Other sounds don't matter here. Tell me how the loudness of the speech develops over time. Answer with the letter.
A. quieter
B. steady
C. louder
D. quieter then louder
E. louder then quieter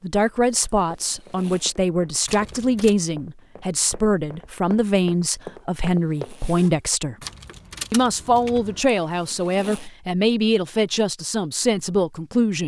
B.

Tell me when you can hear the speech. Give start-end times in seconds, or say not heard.
0.0-7.2, 7.9-12.6.